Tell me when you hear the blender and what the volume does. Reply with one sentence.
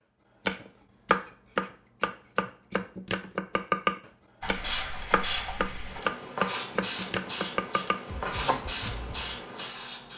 The blender can't be heard in this clip.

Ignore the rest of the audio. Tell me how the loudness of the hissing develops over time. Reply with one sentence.
The loudness of the hissing stays about the same.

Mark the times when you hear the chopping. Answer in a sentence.
The chopping can be heard from 0.5 to 9.4 s.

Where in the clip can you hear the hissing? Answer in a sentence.
You can hear the hissing from 4.4 to 10.1 s.